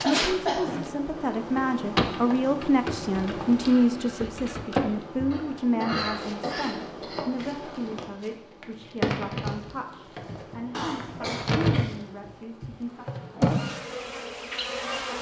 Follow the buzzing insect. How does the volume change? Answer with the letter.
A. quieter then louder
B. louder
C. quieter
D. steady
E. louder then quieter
A.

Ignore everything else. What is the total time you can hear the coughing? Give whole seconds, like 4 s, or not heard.
4 s.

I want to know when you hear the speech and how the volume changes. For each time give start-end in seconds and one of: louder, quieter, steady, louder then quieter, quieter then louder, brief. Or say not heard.
0.1-13.1 quieter.